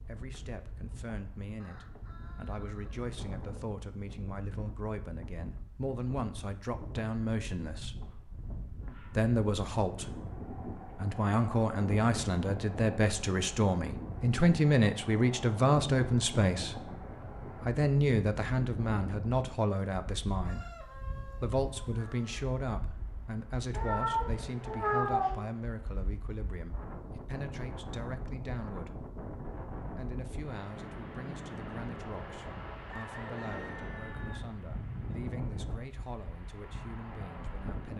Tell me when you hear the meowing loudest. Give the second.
25 s.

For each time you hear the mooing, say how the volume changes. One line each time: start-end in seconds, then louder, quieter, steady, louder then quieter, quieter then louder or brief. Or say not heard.
not heard.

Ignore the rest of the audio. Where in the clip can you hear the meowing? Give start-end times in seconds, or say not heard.
23.7-25.4.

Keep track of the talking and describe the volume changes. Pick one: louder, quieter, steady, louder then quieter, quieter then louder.
louder then quieter.